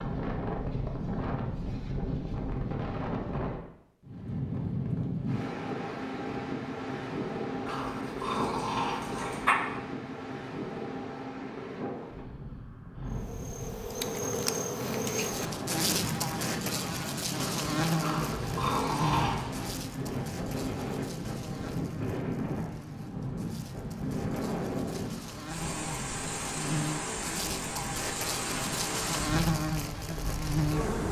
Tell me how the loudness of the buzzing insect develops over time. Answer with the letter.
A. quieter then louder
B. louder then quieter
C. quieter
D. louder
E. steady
A.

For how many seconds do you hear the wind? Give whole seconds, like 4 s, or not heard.
31 s.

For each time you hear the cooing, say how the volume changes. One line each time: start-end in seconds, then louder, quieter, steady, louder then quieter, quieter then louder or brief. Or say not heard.
not heard.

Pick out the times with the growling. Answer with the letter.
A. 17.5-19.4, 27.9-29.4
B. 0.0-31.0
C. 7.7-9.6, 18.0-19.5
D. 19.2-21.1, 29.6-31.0
C.